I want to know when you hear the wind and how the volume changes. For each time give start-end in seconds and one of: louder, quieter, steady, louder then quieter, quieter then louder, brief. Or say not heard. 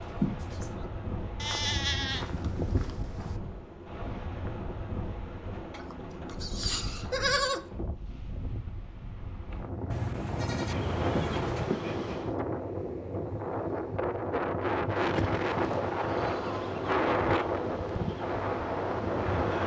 0.0-19.6 louder.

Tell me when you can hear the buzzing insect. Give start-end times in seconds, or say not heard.
10.6-12.3, 15.0-19.6.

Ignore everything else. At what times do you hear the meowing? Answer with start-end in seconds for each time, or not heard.
0.0-0.8.